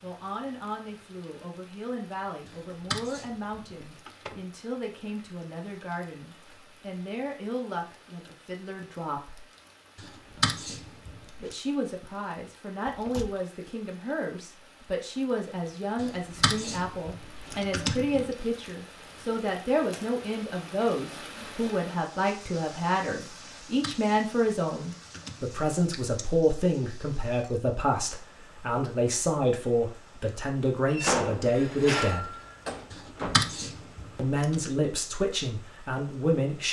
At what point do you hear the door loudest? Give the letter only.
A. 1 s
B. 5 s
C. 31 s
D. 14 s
C.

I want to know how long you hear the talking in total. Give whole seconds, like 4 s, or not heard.
33 s.